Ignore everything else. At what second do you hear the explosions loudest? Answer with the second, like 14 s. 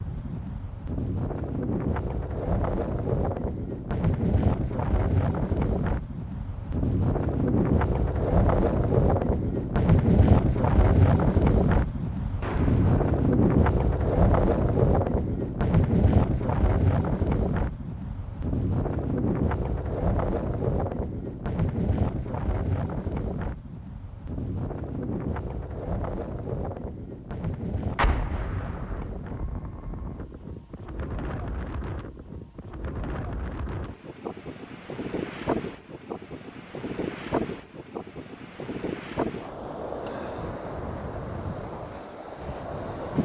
28 s.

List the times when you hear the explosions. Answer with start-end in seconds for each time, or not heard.
12.4-13.1, 27.9-29.2.